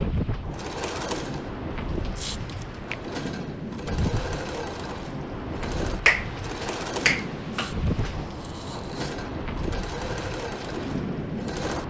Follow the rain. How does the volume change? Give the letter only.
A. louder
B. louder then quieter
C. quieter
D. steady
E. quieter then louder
D.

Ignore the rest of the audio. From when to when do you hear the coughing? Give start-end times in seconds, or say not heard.
not heard.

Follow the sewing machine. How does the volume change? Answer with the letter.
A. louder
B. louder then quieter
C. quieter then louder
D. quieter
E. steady
E.